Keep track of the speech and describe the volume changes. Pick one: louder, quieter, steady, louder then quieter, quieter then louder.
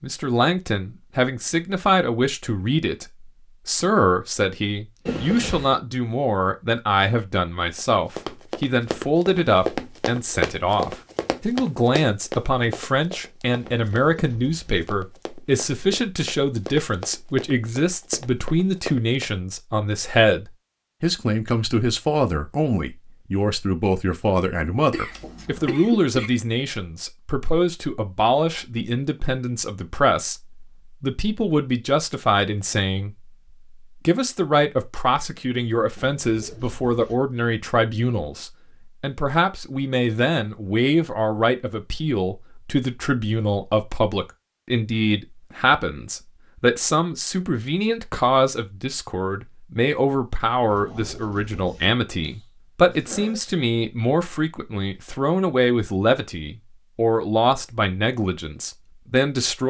steady.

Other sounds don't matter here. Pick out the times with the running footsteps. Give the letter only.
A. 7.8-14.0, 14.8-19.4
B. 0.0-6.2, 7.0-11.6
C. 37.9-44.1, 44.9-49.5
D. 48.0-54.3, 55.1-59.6
A.